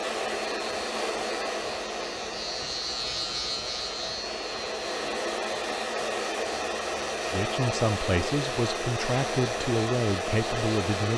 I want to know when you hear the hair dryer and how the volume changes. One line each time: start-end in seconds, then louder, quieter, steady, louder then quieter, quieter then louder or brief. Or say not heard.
0.0-11.1 quieter then louder.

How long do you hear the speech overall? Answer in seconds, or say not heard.
4 s.